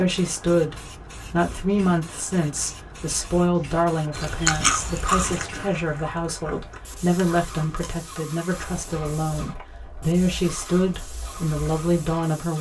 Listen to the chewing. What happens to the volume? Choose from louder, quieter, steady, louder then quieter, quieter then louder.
quieter.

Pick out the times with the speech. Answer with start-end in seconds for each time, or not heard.
0.0-12.5.